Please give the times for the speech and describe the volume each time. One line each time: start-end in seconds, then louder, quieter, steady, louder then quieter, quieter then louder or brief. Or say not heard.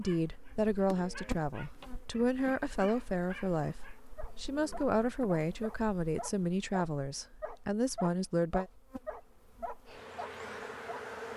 0.0-8.7 steady.